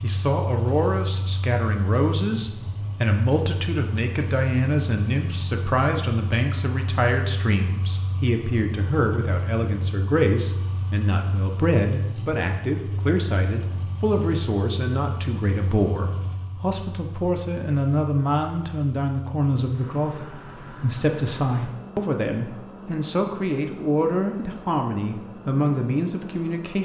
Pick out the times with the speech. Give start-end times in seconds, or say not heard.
0.0-26.8.